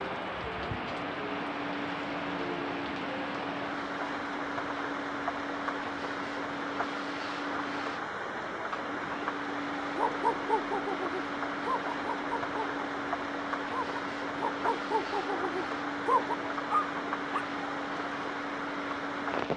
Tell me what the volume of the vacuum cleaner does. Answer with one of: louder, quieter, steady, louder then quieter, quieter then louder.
steady.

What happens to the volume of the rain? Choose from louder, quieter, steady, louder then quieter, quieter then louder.
steady.